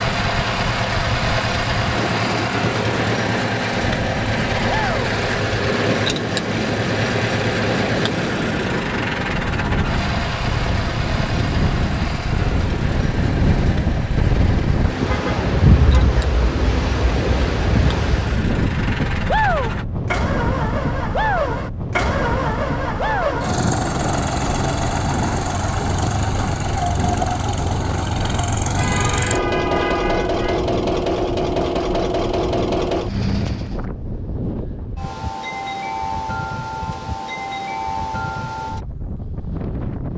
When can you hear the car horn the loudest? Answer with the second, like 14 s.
30 s.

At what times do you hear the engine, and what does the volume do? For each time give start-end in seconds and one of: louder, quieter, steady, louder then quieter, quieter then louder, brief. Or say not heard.
0.0-33.9 quieter then louder.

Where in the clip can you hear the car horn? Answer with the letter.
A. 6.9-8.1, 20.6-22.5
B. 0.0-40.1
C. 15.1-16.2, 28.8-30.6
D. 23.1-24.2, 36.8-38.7
C.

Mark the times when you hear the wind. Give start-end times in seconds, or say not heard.
0.0-40.1.